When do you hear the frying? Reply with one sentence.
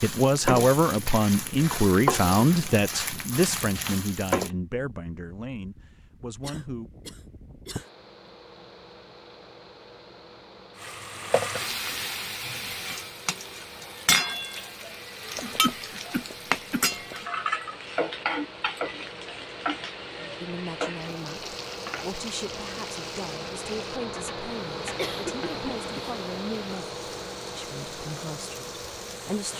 The frying can be heard from 0.0 to 4.5 s and from 10.8 to 29.5 s.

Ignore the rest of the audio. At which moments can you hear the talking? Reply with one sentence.
The talking can be heard from 0.0 to 6.9 s and from 20.4 to 29.5 s.